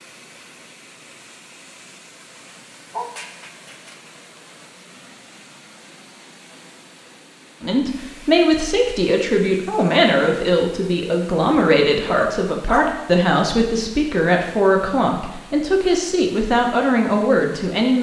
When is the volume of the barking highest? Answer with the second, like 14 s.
13 s.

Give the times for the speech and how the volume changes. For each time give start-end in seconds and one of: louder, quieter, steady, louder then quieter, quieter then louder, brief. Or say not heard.
7.6-17.9 steady.